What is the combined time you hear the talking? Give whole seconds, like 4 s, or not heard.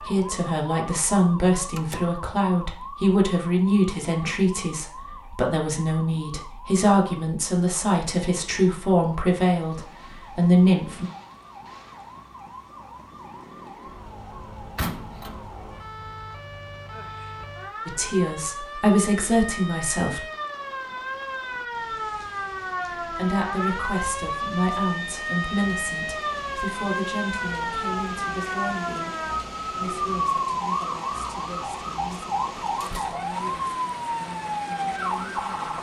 26 s.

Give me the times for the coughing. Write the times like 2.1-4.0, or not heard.
not heard.